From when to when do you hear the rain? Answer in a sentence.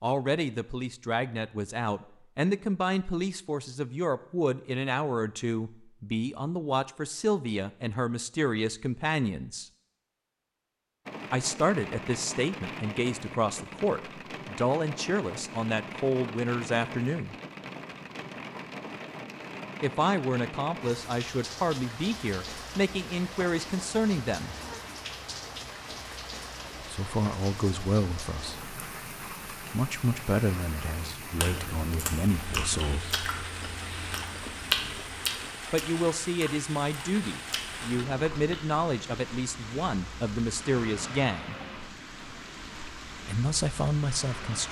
You can hear the rain from 11.1 to 44.6 s.